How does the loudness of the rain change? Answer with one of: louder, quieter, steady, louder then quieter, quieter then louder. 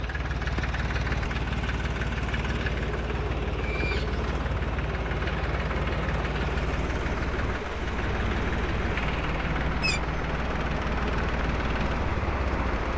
louder.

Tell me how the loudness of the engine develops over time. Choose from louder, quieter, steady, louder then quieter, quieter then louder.
steady.